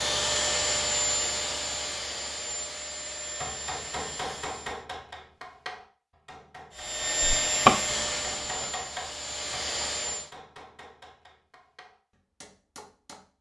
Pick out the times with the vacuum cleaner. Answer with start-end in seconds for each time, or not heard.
0.0-4.8, 6.8-10.3.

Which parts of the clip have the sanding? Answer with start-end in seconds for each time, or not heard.
7.2-8.7.